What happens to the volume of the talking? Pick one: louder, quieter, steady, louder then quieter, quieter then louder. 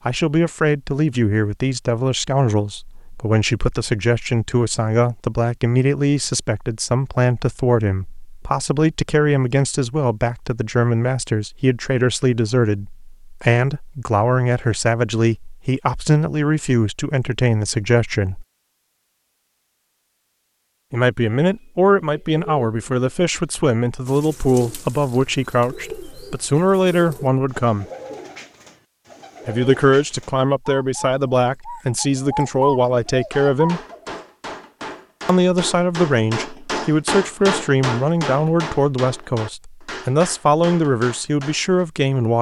steady.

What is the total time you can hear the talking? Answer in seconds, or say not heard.
37 s.